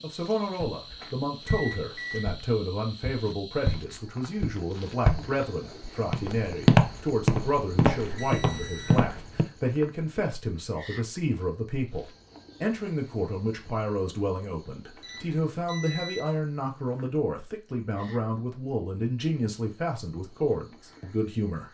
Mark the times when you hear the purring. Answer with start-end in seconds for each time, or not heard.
not heard.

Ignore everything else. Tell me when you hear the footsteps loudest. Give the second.
7 s.